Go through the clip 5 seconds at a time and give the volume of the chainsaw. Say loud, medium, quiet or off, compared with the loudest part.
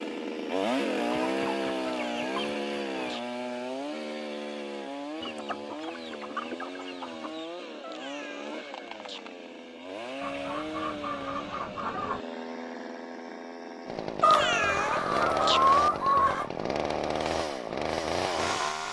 loud, medium, medium, loud.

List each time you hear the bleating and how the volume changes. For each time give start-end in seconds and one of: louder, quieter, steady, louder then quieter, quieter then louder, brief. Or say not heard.
not heard.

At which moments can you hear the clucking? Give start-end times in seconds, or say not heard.
1.2-3.2, 5.2-7.5, 10.2-12.2, 14.2-16.5.